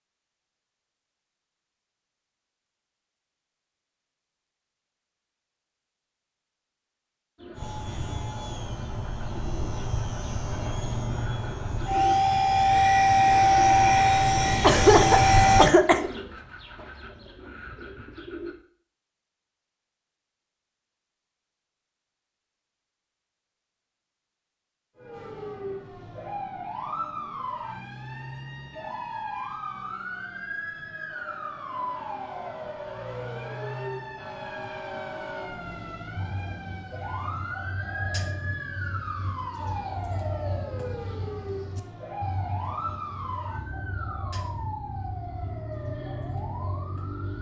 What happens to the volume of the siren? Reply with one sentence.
The loudness of the siren stays about the same.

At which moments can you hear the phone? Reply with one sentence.
You can't hear the phone here.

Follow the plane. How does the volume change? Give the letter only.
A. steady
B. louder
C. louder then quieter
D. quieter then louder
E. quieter
B.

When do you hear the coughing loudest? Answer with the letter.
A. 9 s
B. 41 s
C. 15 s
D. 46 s
C.